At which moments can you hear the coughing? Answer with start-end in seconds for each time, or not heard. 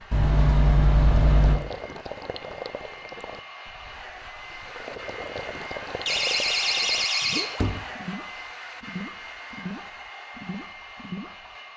not heard.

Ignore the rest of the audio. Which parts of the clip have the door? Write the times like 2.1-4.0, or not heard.
0.1-1.6, 6.0-7.8.